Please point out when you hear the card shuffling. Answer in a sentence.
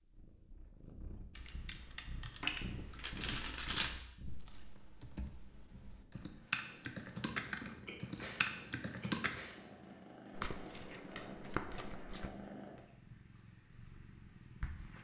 You can hear the card shuffling from 2.4 to 4.0 s and from 10.3 to 12.3 s.